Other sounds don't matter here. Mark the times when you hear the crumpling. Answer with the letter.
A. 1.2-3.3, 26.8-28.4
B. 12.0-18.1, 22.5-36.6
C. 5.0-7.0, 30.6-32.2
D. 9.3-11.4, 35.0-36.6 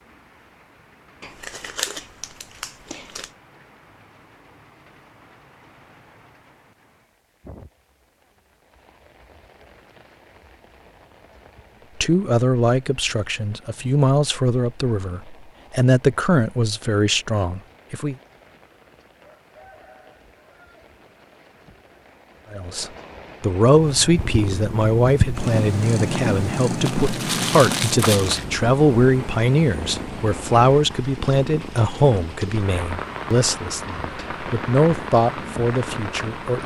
A.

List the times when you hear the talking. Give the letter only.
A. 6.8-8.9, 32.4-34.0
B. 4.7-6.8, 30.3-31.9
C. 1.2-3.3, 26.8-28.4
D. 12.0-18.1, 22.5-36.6
D.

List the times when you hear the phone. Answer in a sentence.
The phone can't be heard in this clip.